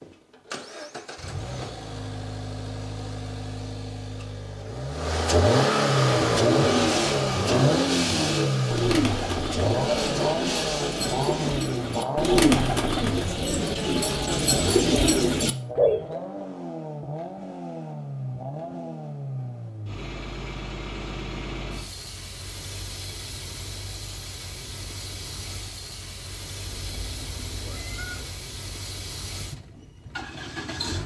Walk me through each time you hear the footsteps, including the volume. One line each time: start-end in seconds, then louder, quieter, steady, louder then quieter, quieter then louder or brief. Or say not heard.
not heard.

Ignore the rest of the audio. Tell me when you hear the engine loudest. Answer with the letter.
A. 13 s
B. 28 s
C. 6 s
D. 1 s
C.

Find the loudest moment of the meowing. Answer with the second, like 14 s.
28 s.